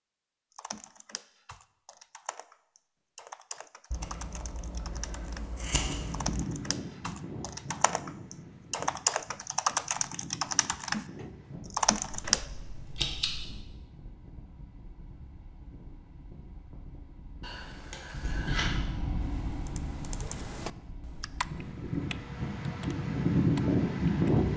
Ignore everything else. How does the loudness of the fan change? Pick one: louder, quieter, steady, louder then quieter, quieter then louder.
quieter then louder.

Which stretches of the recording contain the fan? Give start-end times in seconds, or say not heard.
5.8-24.5.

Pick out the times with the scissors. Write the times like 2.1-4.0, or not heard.
3.9-6.3, 12.1-13.6, 17.4-18.8.